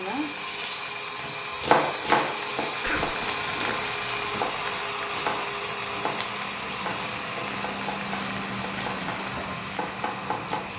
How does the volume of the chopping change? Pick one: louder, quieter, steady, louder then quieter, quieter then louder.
quieter.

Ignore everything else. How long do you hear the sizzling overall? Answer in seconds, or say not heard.
11 s.